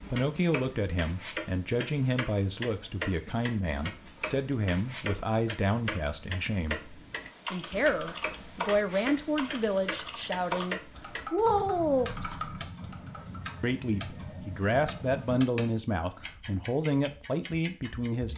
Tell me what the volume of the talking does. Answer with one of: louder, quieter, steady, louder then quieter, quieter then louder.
steady.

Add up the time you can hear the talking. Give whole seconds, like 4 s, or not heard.
16 s.